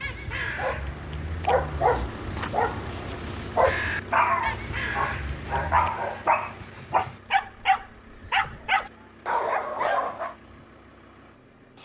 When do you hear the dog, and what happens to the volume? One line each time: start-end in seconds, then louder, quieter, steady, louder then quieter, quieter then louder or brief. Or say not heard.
0.6-10.3 steady.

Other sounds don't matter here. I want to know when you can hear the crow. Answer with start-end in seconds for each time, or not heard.
0.0-5.9.